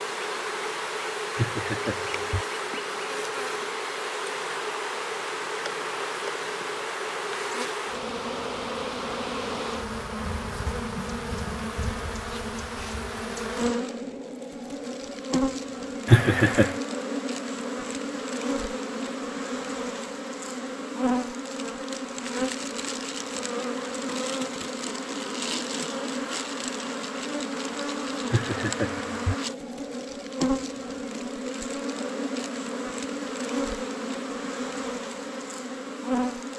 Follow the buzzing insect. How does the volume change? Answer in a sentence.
The loudness of the buzzing insect stays about the same.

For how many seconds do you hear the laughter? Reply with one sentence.
You can hear the laughter for 3 seconds altogether.